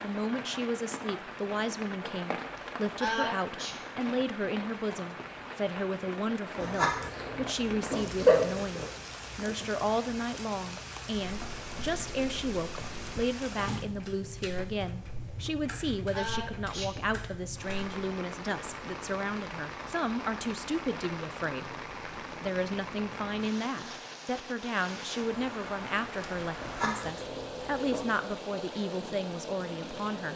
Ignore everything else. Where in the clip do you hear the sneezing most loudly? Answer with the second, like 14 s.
3 s.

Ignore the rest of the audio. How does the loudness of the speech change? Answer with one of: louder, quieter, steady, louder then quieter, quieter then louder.
steady.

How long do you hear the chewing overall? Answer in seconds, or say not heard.
4 s.